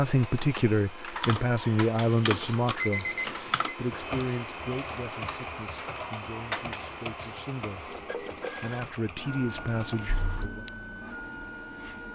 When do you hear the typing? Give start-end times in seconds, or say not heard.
1.2-10.2.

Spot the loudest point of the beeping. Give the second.
3 s.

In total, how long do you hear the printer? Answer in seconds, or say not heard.
12 s.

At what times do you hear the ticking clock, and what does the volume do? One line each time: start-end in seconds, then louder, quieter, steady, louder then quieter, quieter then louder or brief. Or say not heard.
not heard.